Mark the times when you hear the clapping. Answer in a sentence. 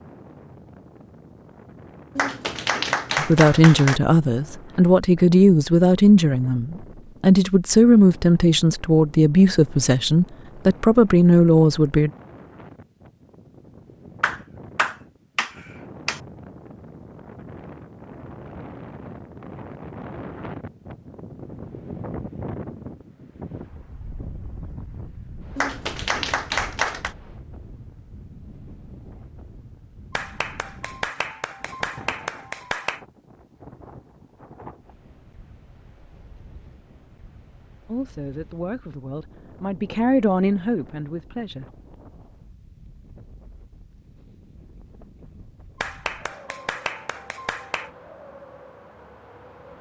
The clapping can be heard from 2.1 to 4.0 s, from 14.2 to 16.2 s, from 25.6 to 27.1 s, from 30.1 to 33.0 s and from 45.8 to 47.9 s.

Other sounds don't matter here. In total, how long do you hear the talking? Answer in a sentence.
You can hear the talking for 13 seconds altogether.